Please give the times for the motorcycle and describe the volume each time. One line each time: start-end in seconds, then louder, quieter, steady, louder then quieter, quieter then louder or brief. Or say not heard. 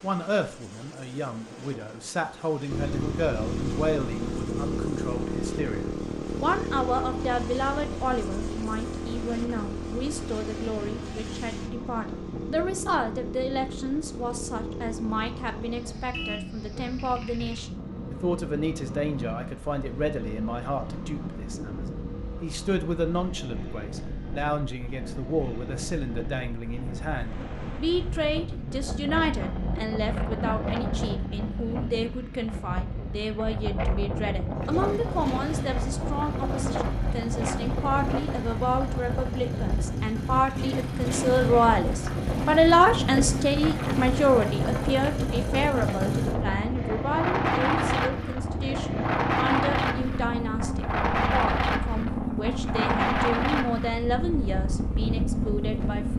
2.6-56.1 quieter then louder.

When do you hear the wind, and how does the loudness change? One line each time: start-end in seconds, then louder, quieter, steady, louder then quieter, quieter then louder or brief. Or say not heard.
0.0-56.1 louder.